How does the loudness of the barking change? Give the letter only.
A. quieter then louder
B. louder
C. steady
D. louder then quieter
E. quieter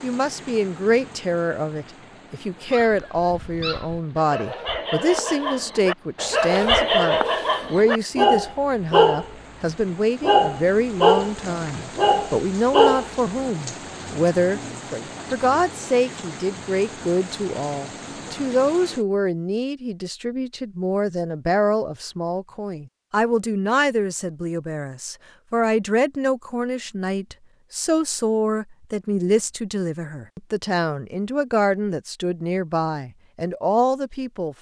B.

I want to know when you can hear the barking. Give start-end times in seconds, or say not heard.
2.7-13.1.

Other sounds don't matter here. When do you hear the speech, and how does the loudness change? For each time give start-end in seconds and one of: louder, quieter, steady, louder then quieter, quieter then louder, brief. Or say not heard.
0.0-34.5 steady.